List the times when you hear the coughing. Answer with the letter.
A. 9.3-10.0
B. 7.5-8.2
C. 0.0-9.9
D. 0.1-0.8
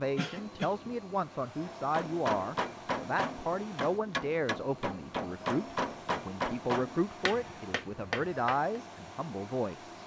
D.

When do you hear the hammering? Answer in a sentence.
You can hear the hammering from 1.6 to 8.6 s.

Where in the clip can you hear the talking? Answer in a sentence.
You can hear the talking from 0.0 to 9.9 s.